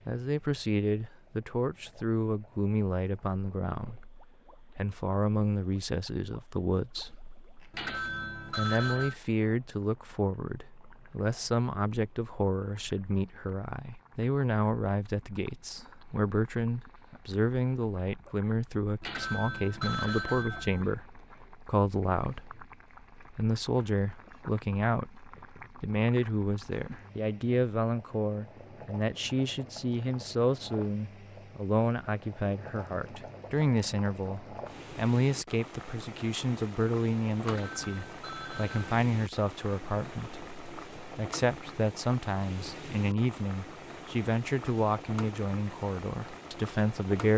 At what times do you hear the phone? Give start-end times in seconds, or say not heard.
7.7-9.2, 19.0-20.9, 37.4-39.0.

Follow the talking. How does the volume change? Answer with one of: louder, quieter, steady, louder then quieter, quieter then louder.
steady.